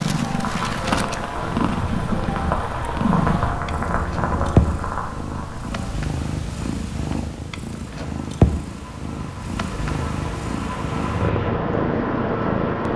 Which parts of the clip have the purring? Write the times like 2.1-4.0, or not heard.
0.0-12.9.